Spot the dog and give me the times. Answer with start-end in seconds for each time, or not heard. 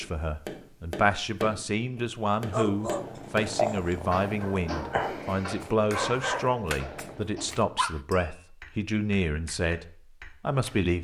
2.5-8.0.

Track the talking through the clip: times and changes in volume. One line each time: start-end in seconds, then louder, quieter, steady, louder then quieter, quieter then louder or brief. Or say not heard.
0.0-11.0 steady.